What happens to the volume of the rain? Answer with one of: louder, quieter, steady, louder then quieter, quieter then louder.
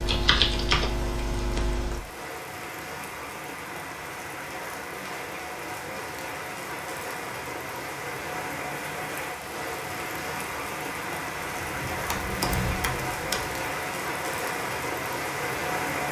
louder.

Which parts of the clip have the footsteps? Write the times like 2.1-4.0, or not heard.
not heard.